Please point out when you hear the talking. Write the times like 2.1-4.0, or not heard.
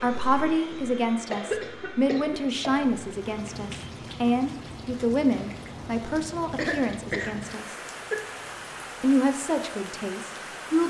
0.0-7.8, 9.0-10.8.